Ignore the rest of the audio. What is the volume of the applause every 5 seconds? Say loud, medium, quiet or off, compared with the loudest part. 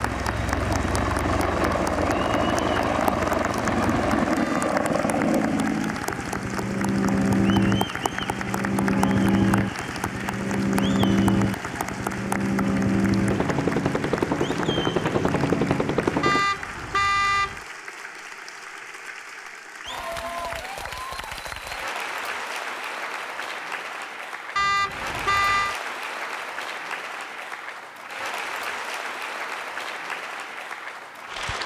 loud, loud, loud, medium, loud, loud, loud.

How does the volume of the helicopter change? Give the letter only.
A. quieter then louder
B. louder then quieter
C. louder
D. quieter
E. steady
E.